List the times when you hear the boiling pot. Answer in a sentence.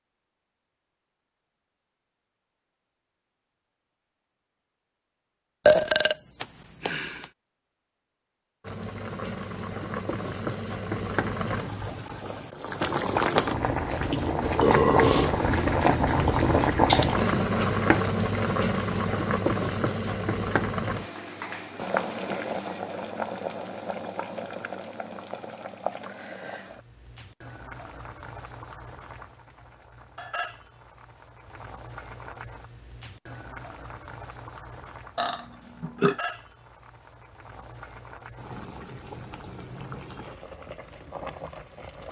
You can hear the boiling pot from 8.6 to 42.0 s.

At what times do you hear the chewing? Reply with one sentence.
The chewing can't be heard in this clip.